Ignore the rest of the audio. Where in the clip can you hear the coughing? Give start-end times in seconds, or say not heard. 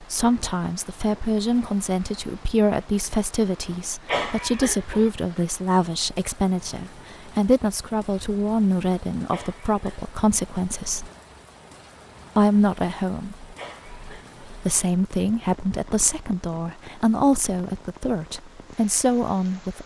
4.0-5.1, 9.3-10.0, 13.6-14.6.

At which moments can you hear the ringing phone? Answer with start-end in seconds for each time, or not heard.
not heard.